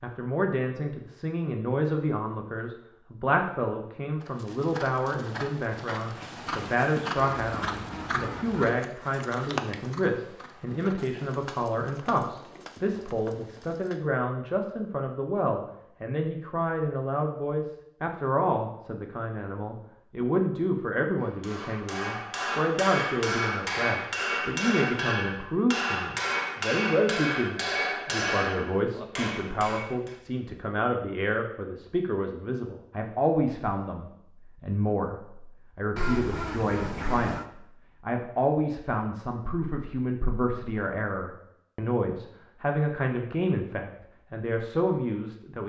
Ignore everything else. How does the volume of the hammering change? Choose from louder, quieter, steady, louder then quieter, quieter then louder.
steady.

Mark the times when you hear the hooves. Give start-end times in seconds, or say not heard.
4.2-14.1.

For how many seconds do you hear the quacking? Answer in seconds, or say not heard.
3 s.